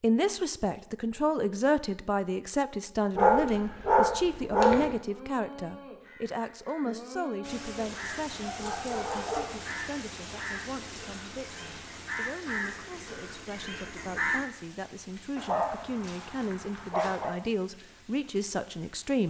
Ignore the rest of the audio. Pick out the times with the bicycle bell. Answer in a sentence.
You can't hear the bicycle bell here.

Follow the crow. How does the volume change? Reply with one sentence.
The volume of the crow goes up.